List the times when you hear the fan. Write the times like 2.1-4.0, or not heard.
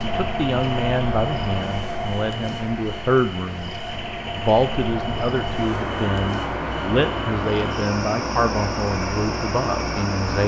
0.0-10.4.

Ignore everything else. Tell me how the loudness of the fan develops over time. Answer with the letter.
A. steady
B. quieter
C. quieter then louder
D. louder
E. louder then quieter
C.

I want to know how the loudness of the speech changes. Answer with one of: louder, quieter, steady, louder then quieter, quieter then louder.
steady.